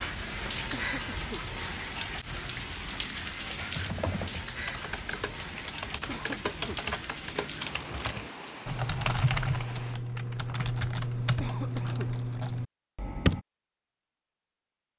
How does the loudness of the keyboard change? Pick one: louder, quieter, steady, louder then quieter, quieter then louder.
louder.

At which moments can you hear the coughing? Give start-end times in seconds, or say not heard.
0.7-1.4, 6.0-6.8, 11.4-12.1.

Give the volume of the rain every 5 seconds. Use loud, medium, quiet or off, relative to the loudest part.
loud, medium, off.